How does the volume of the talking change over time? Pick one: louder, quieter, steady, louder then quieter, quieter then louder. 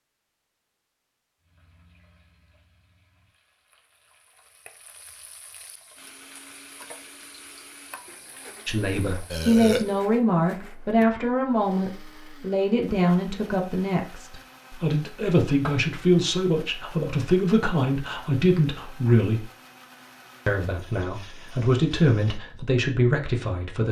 steady.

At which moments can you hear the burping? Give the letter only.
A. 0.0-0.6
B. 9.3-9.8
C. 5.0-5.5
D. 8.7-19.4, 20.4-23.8
B.